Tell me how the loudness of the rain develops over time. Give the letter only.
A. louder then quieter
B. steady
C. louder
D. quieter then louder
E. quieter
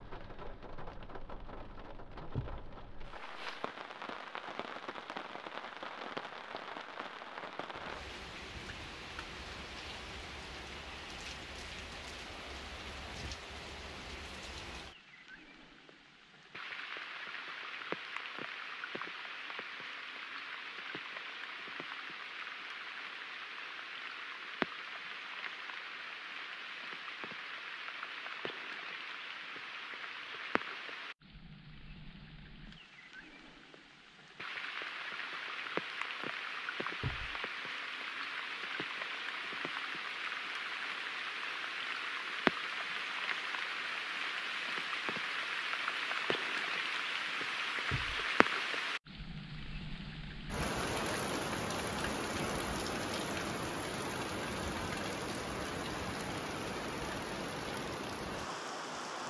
C.